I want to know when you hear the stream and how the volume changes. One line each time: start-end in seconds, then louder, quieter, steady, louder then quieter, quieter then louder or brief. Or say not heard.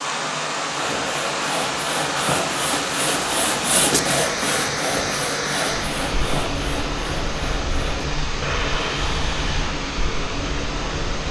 0.0-11.2 steady.